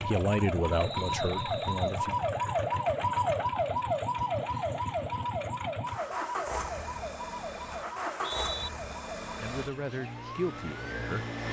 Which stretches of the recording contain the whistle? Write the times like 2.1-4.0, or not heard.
0.7-2.0, 8.0-8.7.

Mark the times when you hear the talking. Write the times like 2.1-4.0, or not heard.
0.0-2.1, 9.3-11.2.